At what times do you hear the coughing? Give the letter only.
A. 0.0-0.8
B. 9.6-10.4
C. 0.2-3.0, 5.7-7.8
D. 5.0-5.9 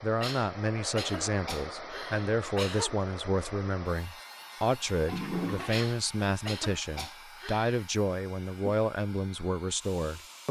C.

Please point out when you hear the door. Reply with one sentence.
The door can't be heard in this clip.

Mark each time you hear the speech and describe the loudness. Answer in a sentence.
The speech can be heard from 0.0 to 10.4 s, at a steady volume.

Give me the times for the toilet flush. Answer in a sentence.
The toilet flush can be heard from 5.0 to 5.9 s.